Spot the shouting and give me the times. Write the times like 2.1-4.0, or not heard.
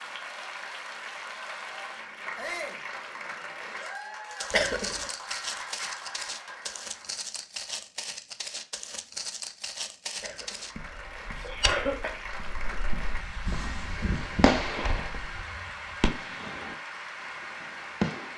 2.4-2.8, 11.3-11.8.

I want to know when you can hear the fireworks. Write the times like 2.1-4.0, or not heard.
12.3-16.8, 17.4-18.3.